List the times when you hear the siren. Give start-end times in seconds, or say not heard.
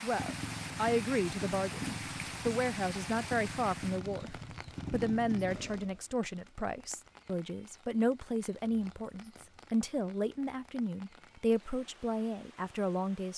not heard.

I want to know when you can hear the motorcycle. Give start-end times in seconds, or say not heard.
0.0-6.0.